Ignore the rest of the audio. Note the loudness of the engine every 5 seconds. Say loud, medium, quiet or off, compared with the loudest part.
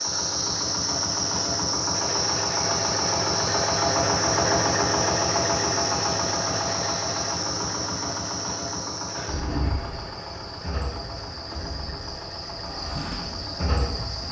loud, loud, quiet.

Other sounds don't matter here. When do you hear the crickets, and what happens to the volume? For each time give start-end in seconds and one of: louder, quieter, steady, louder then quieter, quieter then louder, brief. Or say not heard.
0.0-14.2 quieter.